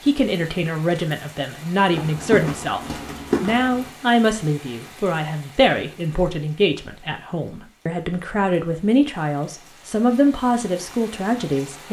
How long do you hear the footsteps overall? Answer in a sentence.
You can hear the footsteps for 2 seconds altogether.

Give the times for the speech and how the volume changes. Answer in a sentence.
The speech can be heard from 0.0 to 11.8 s, at a steady volume.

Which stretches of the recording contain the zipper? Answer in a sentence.
You can't hear the zipper here.